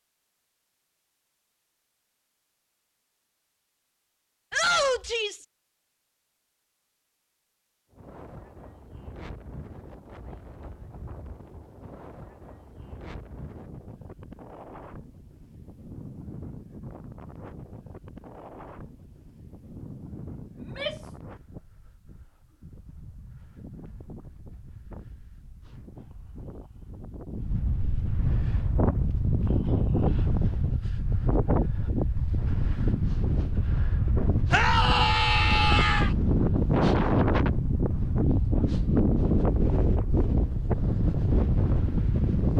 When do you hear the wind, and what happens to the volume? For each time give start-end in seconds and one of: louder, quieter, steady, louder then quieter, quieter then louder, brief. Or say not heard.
7.9-42.5 louder.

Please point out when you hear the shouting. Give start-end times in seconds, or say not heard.
4.5-5.5, 20.6-21.1, 34.5-36.1.